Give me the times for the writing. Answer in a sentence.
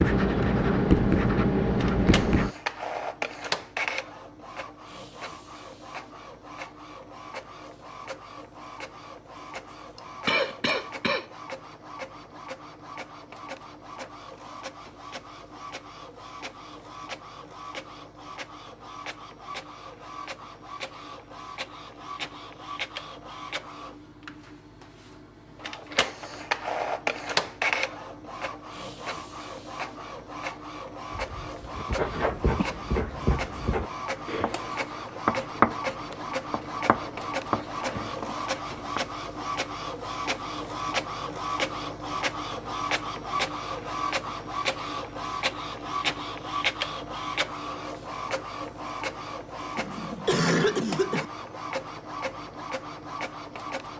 The writing can be heard from 0.0 to 2.5 s and from 31.8 to 39.0 s.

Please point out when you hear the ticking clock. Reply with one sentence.
The ticking clock can't be heard in this clip.